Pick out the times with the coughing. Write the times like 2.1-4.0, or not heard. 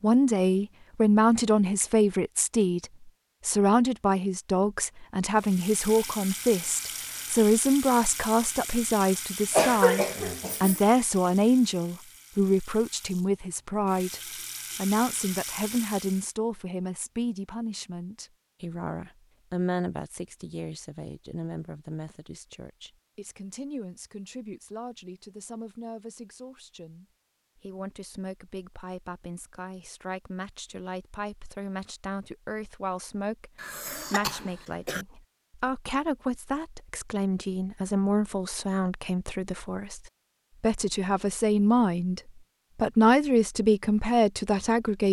9.5-10.8, 33.5-35.0.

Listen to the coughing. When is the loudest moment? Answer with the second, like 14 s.
10 s.